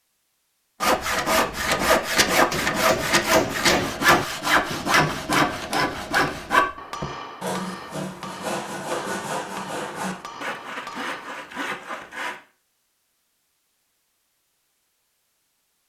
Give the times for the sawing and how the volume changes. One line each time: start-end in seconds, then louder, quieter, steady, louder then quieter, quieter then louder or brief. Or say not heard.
0.8-12.3 quieter.